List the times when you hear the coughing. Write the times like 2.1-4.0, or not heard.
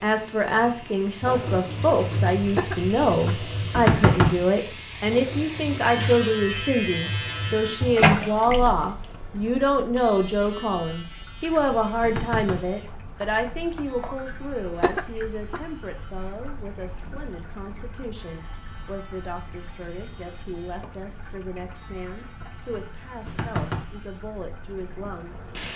2.4-3.5, 14.7-15.6.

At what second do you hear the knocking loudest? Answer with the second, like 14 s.
4 s.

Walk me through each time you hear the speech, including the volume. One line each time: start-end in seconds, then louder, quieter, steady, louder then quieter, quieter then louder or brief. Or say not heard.
0.0-25.5 quieter.